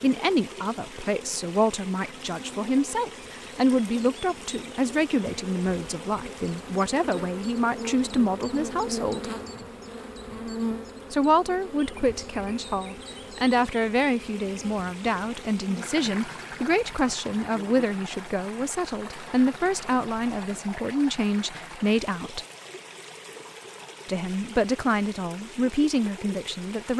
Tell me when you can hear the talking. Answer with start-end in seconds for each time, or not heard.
0.0-9.3, 11.1-22.4, 24.1-26.9.